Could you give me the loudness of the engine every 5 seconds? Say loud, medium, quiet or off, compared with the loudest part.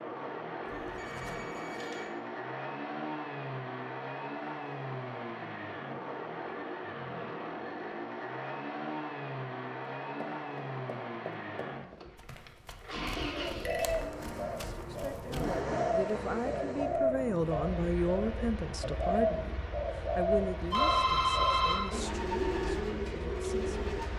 loud, loud, loud, loud, medium.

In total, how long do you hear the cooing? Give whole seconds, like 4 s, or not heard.
11 s.